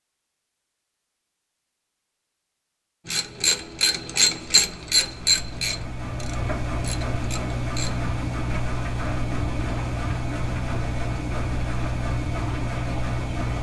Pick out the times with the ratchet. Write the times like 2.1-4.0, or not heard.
3.0-8.1.